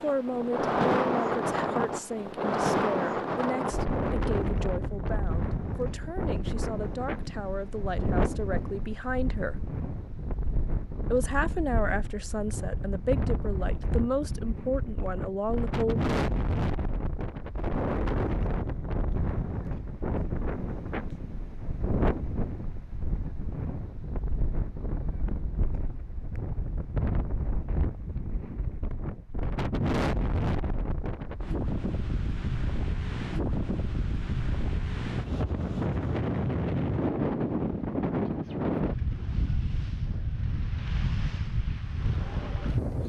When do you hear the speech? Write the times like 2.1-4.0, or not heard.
0.0-9.6, 11.1-16.1.